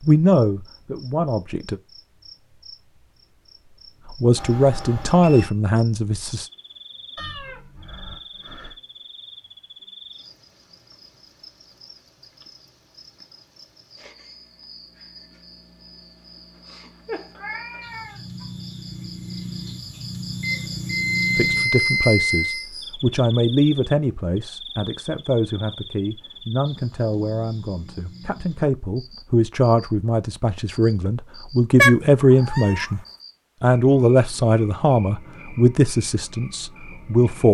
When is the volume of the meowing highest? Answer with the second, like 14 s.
32 s.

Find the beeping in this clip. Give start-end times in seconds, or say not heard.
4.3-5.5, 20.4-22.6.